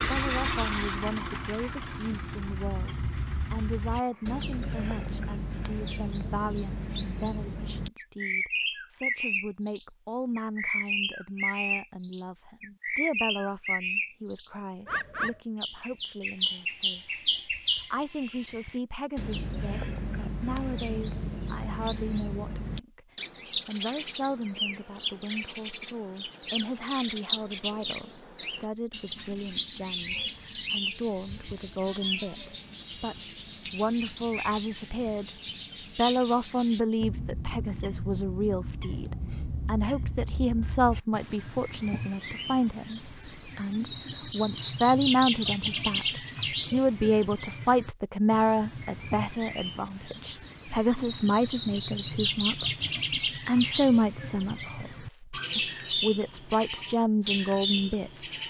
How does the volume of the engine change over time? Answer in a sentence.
The loudness of the engine goes down.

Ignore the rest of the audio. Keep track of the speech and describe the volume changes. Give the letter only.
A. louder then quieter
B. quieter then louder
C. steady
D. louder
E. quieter
D.